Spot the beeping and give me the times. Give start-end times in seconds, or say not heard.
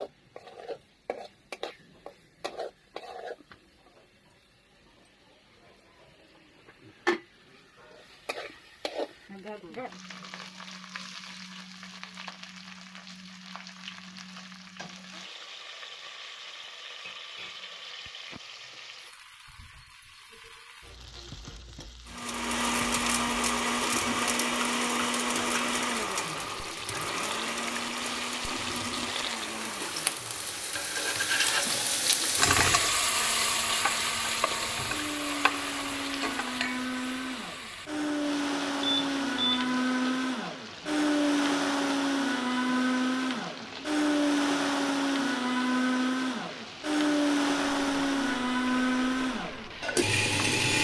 38.8-39.7.